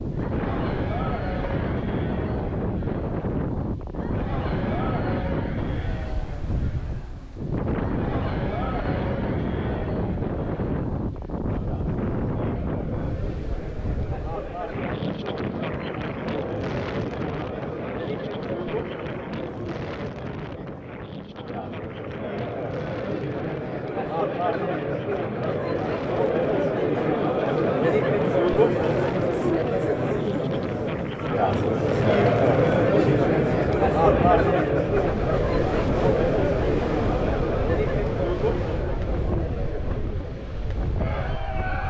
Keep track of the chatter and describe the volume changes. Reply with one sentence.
The loudness of the chatter goes up.